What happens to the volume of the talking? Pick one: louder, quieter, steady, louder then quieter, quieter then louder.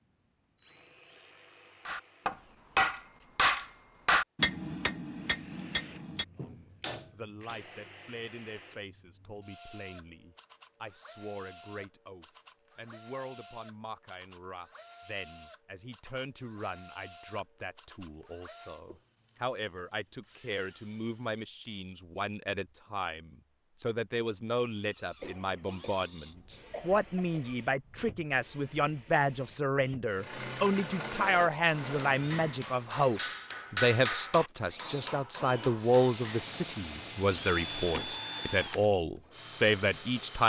louder.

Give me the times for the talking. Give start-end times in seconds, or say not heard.
6.3-40.4.